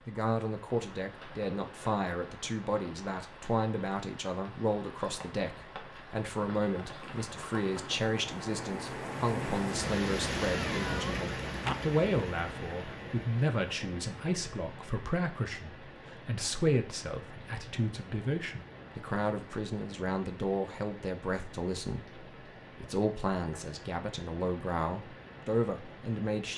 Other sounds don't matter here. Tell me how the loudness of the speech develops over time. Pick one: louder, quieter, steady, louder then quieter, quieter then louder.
steady.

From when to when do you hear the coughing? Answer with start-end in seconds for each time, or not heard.
not heard.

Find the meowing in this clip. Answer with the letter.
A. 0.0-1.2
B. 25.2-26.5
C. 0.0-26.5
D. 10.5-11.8
D.